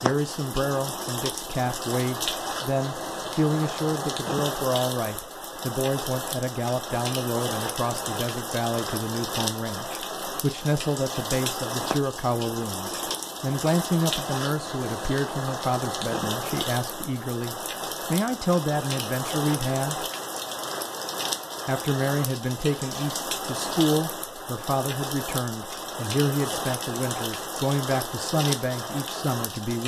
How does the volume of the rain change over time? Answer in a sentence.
The volume of the rain stays about the same.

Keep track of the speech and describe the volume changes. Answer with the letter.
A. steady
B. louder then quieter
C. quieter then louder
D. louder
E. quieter
A.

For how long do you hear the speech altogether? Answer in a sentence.
The speech can be heard for 28 seconds in total.